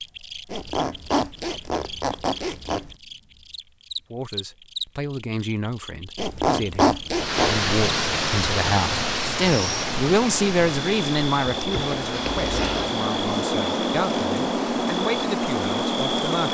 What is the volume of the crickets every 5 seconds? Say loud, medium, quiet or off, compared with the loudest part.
quiet, quiet, loud, loud.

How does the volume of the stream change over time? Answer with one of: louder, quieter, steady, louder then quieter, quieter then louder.
quieter.